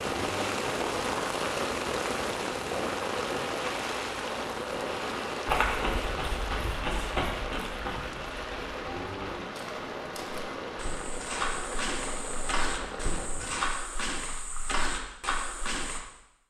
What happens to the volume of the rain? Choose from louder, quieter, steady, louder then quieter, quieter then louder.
quieter.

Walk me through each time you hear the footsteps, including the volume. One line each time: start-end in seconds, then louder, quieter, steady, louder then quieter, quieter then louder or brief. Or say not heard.
5.5-16.0 quieter then louder.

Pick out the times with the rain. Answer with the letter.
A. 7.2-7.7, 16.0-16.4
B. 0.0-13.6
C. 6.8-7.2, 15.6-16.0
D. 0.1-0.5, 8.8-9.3
B.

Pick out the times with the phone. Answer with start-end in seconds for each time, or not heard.
0.1-0.5, 8.8-9.3.